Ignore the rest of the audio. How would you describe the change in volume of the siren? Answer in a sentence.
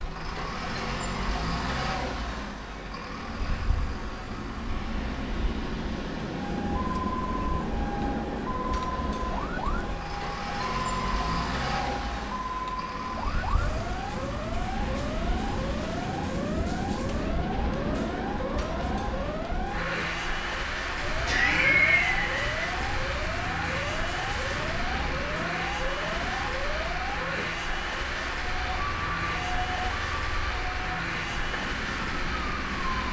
The volume of the siren stays about the same.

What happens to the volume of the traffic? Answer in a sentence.
The loudness of the traffic stays about the same.